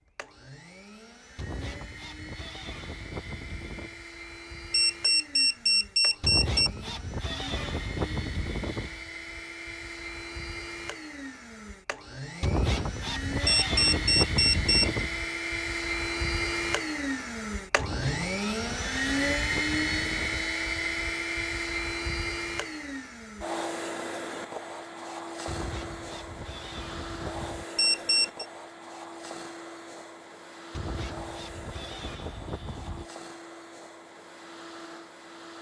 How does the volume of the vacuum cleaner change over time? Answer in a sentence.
The volume of the vacuum cleaner goes up, then down.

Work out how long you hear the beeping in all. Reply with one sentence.
You can hear the beeping for 4 seconds altogether.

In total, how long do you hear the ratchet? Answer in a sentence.
You can hear the ratchet for 16 seconds altogether.